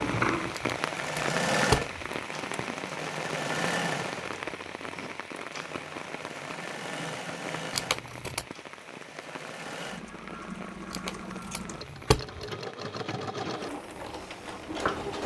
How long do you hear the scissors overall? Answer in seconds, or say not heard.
4 s.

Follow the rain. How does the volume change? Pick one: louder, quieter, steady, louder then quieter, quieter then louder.
quieter.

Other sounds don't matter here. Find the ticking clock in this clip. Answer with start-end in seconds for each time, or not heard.
not heard.